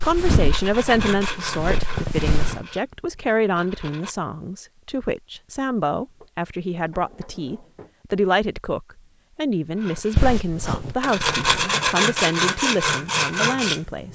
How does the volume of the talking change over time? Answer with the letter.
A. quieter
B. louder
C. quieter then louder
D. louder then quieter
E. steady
E.